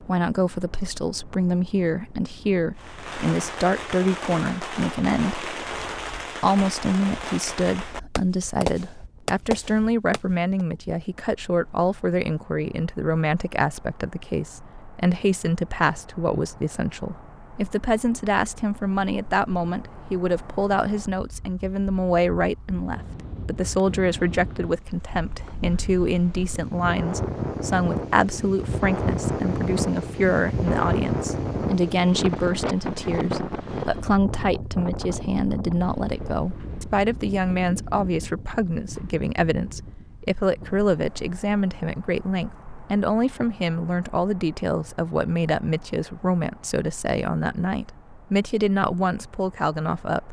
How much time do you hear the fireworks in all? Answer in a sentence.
You can hear the fireworks for 8 seconds altogether.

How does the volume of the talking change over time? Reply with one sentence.
The volume of the talking stays about the same.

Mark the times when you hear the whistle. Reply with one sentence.
You can't hear the whistle here.